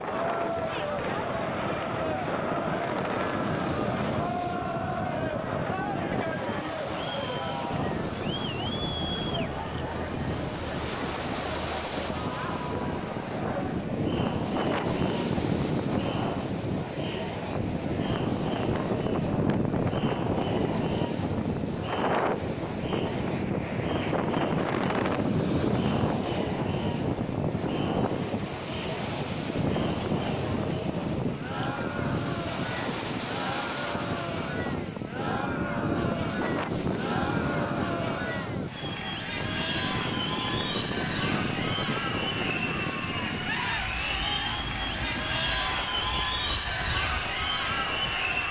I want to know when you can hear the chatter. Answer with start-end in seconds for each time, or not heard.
0.0-48.4.